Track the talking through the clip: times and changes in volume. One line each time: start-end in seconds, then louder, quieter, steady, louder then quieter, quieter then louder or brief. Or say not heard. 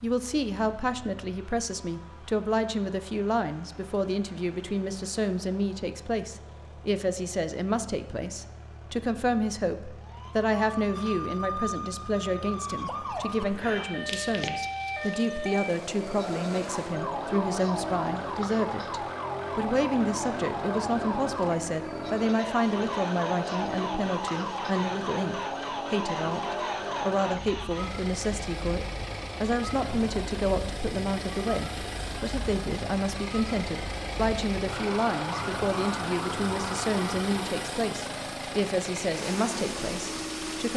0.0-40.7 steady.